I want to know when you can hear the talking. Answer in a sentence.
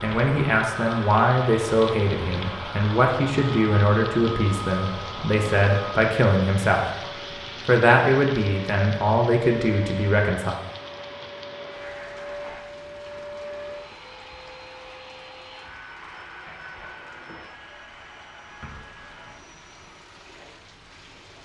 The talking can be heard from 0.0 to 6.8 s and from 7.7 to 10.6 s.